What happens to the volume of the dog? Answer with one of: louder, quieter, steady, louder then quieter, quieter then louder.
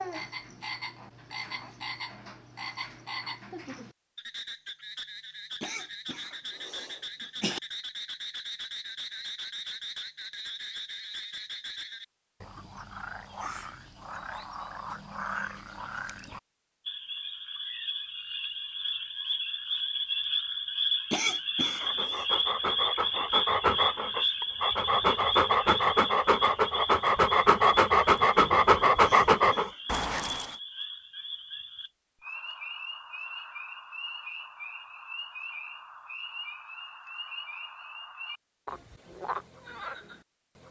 louder.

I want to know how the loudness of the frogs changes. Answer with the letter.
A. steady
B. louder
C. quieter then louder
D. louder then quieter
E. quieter
D.